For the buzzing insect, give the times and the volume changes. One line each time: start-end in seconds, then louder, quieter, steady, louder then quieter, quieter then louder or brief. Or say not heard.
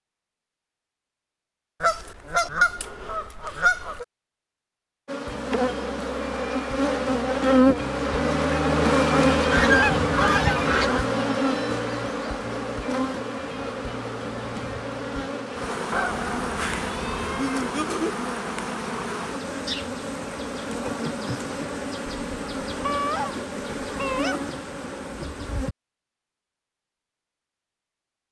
5.0-25.8 quieter.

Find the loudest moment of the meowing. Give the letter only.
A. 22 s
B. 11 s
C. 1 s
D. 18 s
D.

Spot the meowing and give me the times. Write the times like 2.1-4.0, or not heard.
16.6-18.1.